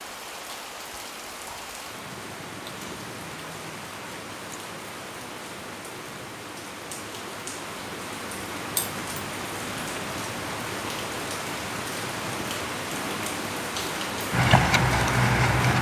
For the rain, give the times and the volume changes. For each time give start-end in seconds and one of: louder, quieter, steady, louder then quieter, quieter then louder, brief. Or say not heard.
0.0-15.7 louder.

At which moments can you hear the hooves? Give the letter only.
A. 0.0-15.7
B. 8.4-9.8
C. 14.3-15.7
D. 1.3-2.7
C.